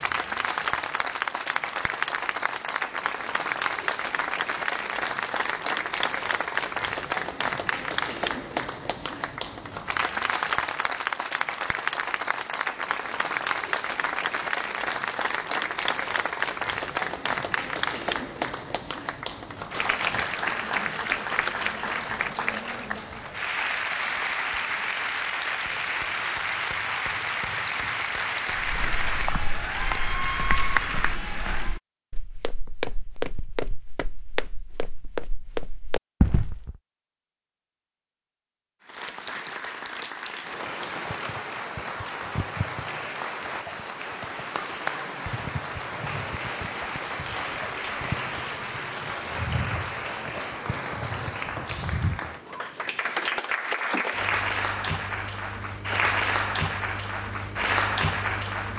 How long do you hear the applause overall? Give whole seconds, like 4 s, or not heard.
52 s.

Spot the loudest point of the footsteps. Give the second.
36 s.